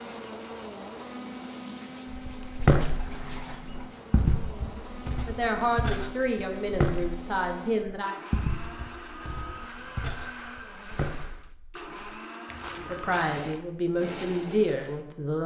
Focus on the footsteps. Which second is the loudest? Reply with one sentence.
The loudest moment of the footsteps is at 3 seconds.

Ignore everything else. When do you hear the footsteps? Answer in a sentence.
You can hear the footsteps from 2.1 to 13.4 s.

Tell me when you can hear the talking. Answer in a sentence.
You can hear the talking from 5.2 to 8.2 s and from 12.7 to 15.4 s.